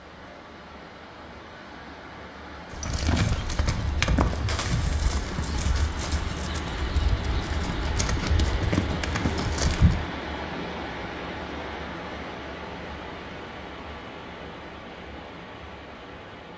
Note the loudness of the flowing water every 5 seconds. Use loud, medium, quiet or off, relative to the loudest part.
medium, loud, loud, medium.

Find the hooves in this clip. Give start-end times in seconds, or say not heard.
2.7-10.0.